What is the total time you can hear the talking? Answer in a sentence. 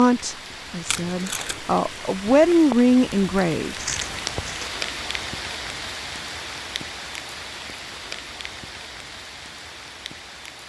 The talking can be heard for 4 seconds in total.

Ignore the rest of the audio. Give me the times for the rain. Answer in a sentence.
You can hear the rain from 0.0 to 10.6 s.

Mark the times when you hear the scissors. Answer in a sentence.
The scissors can be heard from 3.8 to 4.7 s.